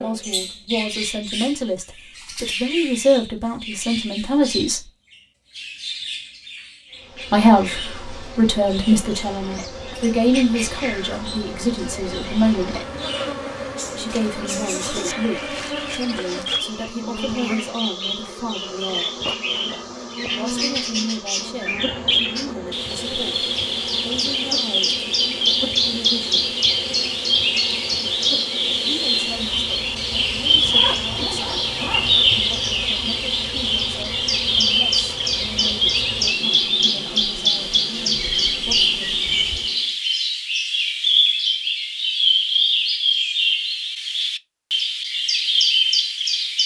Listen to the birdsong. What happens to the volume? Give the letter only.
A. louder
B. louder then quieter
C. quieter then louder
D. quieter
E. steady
A.